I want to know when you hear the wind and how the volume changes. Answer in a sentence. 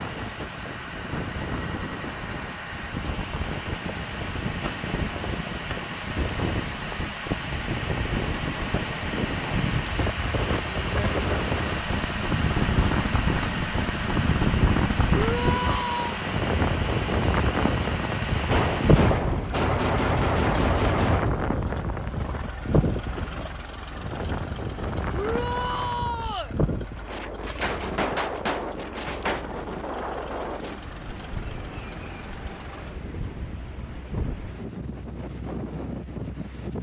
You can hear the wind from 0.0 to 36.7 s, getting louder then quieter.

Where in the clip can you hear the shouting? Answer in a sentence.
The shouting can be heard from 15.1 to 16.2 s and from 25.1 to 26.6 s.